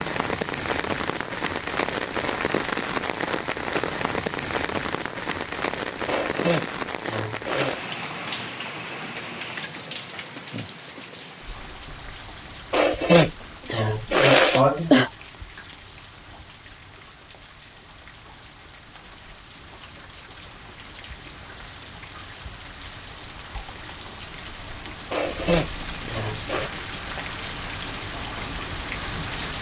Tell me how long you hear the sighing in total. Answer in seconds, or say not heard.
6 s.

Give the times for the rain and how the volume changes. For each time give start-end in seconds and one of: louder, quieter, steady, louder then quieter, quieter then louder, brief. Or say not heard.
0.0-29.5 quieter then louder.